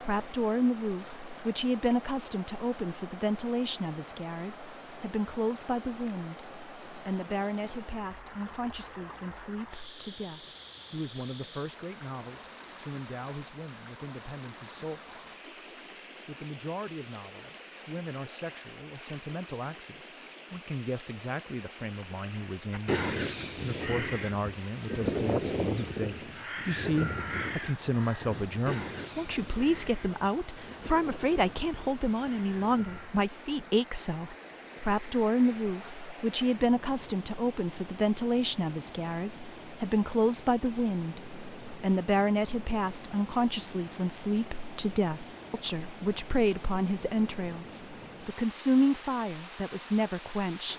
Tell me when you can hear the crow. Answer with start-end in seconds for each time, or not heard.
22.7-33.1.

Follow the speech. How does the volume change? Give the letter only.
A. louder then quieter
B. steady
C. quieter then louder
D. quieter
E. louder
C.